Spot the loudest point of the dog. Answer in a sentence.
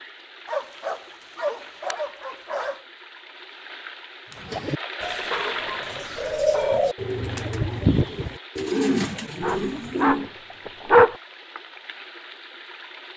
The volume of the dog peaks at 11 seconds.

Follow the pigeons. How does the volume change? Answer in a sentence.
The volume of the pigeons goes up.